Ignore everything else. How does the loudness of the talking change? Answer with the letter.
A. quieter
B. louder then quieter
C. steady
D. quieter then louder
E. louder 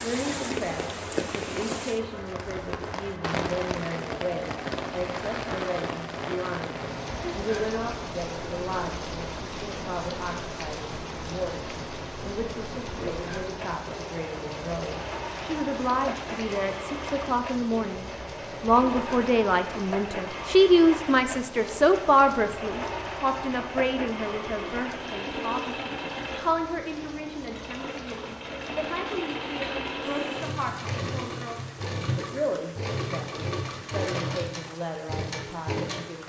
B.